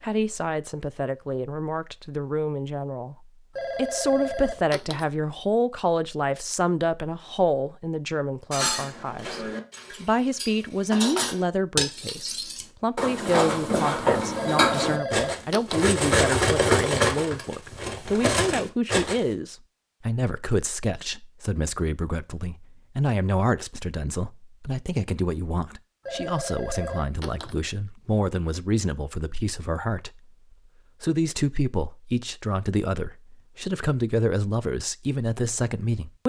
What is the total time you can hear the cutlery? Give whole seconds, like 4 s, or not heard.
11 s.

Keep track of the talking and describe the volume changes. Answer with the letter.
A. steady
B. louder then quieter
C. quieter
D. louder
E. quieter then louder
A.